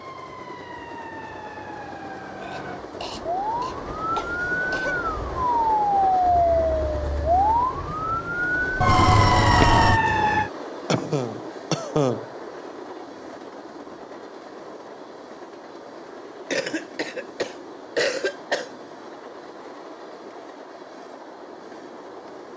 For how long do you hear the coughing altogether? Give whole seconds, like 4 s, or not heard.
6 s.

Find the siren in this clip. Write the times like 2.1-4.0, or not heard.
0.0-10.5.